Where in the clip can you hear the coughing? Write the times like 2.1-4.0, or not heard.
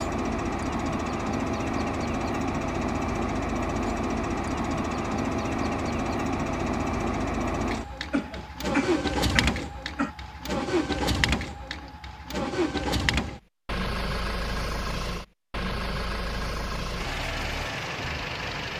8.1-10.1.